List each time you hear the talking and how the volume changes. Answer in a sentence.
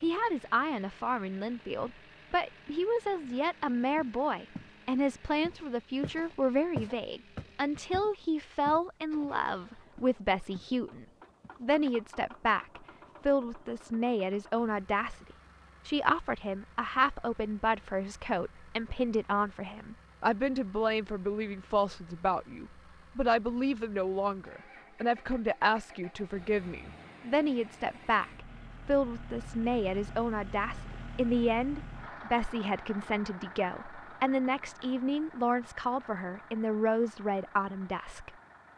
The talking can be heard from 0.0 to 15.2 s, at a steady volume; and from 15.8 to 38.3 s, at a steady volume.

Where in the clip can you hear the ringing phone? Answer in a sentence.
The ringing phone can't be heard in this clip.